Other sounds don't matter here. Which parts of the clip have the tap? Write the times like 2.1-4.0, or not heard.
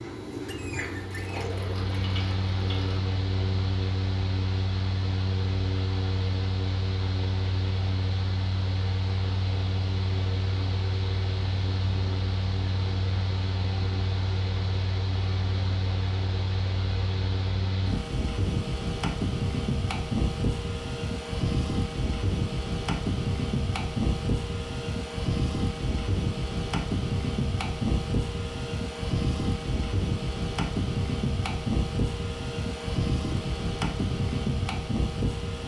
0.0-3.0.